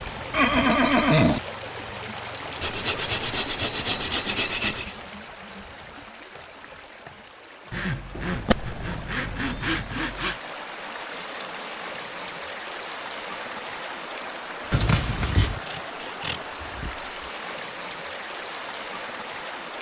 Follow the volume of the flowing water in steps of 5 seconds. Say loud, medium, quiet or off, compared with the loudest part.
loud, medium, loud, loud.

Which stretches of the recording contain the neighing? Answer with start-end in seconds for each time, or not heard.
0.3-1.4, 8.2-9.8, 14.7-15.6.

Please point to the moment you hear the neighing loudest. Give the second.
1 s.